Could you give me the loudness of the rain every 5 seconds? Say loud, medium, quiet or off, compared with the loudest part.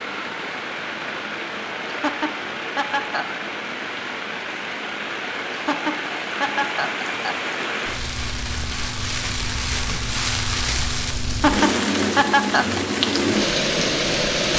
medium, medium, loud.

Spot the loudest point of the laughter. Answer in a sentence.
The loudest moment of the laughter is at 12 seconds.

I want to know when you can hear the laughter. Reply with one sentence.
You can hear the laughter from 1.9 to 3.3 s, from 5.5 to 7.3 s and from 11.3 to 12.8 s.